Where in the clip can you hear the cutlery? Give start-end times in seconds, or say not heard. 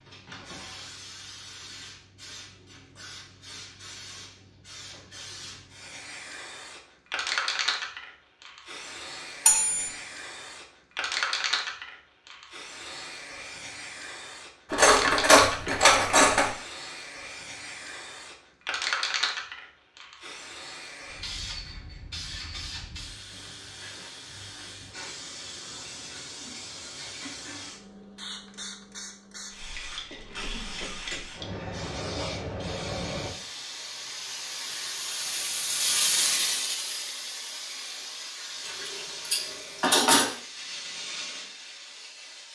9.4-9.9, 14.7-16.5, 38.6-40.3.